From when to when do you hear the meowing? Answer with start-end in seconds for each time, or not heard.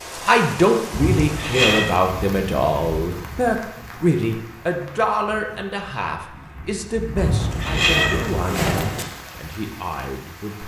0.9-1.9, 7.2-9.1.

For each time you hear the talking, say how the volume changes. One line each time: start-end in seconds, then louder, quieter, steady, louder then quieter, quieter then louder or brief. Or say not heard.
0.2-10.6 quieter.